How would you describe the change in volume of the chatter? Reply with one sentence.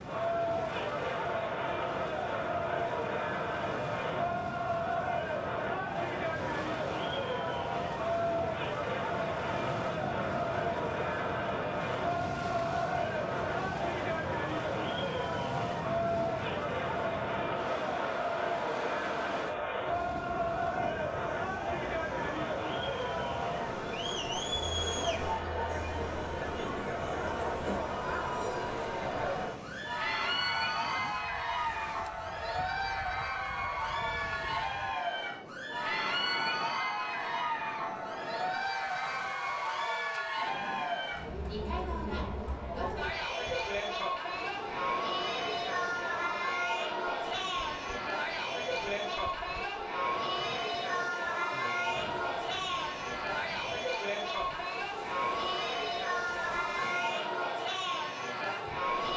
The volume of the chatter stays about the same.